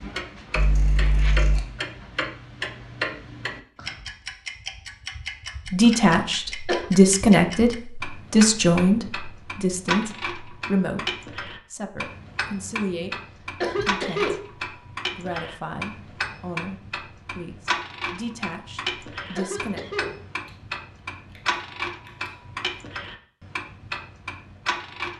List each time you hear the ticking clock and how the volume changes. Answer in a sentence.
You can hear the ticking clock from 0.0 to 25.1 s, at a steady volume.